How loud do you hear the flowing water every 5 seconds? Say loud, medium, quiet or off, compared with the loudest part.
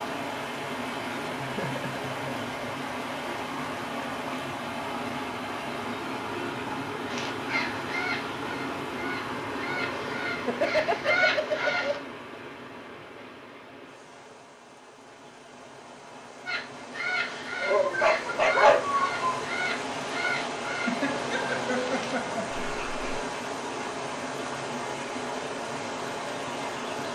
loud, loud, medium, medium, loud, loud.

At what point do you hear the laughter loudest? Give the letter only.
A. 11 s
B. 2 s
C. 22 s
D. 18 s
A.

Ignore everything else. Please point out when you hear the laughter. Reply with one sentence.
You can hear the laughter from 1.4 to 2.5 s, from 10.4 to 11.8 s and from 20.9 to 22.6 s.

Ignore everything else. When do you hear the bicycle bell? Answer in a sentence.
The bicycle bell can't be heard in this clip.